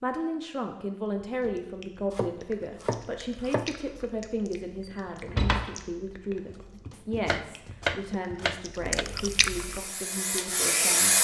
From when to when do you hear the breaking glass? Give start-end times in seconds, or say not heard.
not heard.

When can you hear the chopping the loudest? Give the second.
8 s.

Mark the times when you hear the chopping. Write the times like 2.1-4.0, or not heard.
2.1-3.8, 6.5-9.1.